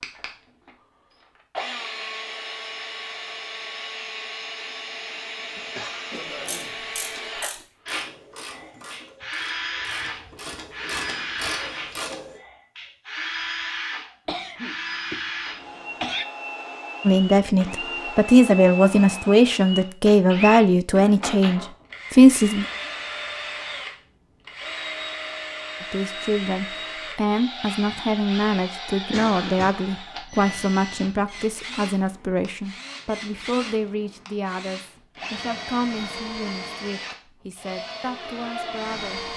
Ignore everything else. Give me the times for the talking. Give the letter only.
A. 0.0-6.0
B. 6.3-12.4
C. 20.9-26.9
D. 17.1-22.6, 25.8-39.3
D.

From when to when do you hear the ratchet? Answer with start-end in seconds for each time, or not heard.
6.3-12.4.